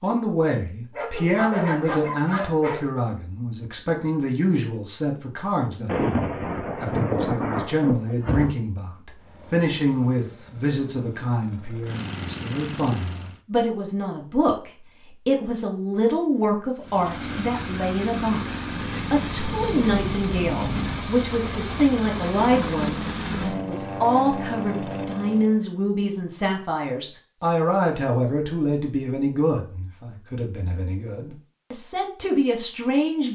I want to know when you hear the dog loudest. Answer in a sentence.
The volume of the dog peaks at 2 seconds.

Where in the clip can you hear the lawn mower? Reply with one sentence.
You can hear the lawn mower from 9.2 to 13.4 s and from 16.8 to 25.6 s.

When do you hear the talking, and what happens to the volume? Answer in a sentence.
You can hear the talking from 0.0 to 33.3 s, at a steady volume.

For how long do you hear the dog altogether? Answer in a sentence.
The dog can be heard for 2 seconds in total.